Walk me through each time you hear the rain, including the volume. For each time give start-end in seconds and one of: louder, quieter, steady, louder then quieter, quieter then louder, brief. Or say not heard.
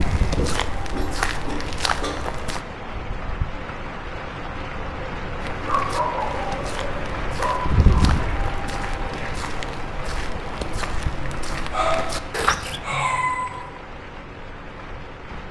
0.0-15.4 louder then quieter.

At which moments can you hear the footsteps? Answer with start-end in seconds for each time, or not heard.
0.0-2.6, 5.4-12.8.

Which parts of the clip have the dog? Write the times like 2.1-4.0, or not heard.
0.3-2.2, 5.7-7.8, 11.2-13.6.